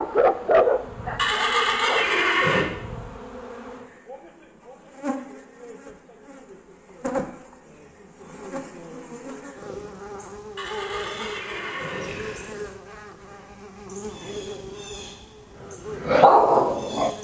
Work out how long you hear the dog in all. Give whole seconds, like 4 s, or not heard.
3 s.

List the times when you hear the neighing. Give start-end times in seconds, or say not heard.
1.1-2.6, 10.6-12.5.